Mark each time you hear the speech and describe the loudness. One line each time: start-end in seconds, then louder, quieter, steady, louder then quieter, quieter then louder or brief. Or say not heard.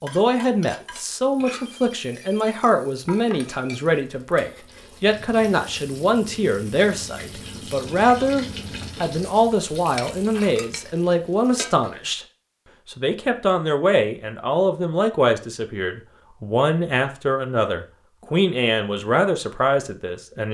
0.0-12.2 steady
12.8-20.4 steady.